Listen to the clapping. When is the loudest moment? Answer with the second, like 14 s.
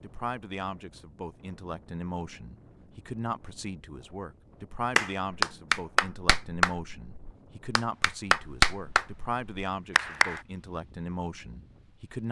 8 s.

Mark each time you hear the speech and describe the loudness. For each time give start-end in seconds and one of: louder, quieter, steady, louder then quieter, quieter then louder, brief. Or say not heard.
0.0-12.2 steady.